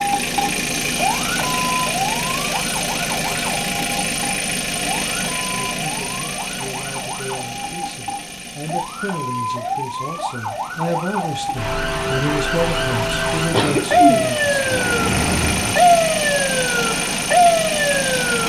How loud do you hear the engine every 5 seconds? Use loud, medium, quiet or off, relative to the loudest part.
loud, medium, medium, loud.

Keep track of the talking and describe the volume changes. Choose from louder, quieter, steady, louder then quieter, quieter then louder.
louder.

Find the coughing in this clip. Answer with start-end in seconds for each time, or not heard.
13.5-15.9.